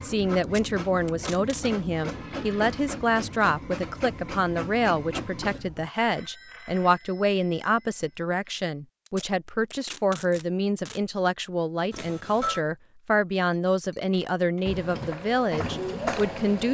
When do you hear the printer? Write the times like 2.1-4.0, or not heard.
0.0-5.9, 14.6-16.6.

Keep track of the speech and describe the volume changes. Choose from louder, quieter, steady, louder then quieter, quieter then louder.
steady.